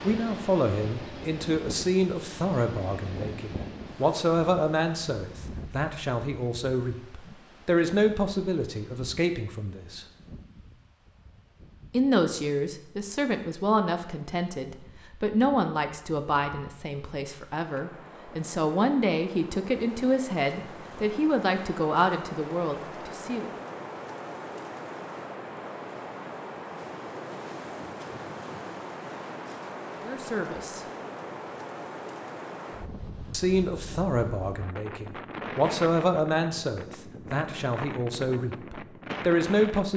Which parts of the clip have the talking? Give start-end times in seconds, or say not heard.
0.0-10.1, 11.9-23.5, 30.0-30.8, 33.3-39.9.